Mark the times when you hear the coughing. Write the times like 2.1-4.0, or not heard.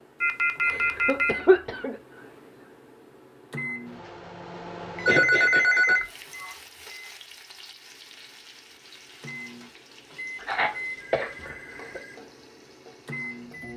0.7-1.9, 5.0-6.5, 10.4-12.0.